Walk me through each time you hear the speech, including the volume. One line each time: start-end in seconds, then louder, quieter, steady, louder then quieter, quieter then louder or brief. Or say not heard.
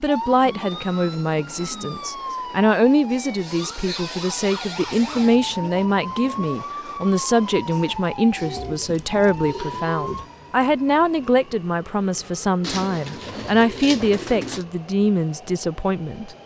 0.0-16.4 steady.